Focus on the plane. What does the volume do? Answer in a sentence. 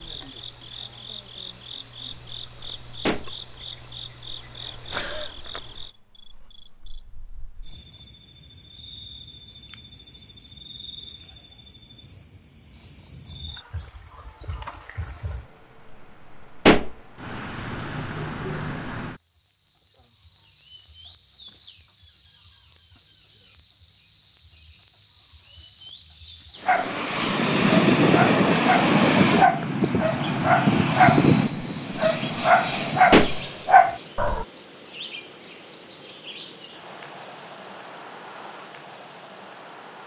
The loudness of the plane goes down.